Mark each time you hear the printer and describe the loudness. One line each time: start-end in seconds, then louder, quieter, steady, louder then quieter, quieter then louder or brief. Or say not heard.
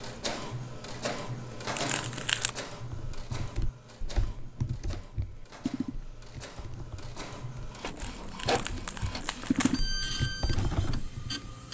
0.0-11.6 quieter then louder.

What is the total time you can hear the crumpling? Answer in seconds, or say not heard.
3 s.